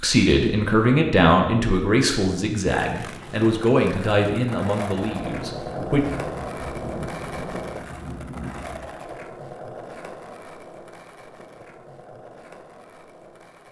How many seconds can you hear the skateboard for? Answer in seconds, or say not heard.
11 s.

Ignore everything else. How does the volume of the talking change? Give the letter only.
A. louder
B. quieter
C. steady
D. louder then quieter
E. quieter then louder
B.